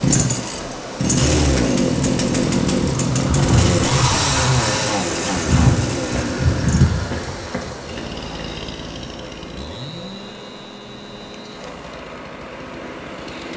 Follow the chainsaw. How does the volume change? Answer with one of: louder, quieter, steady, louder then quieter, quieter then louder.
quieter.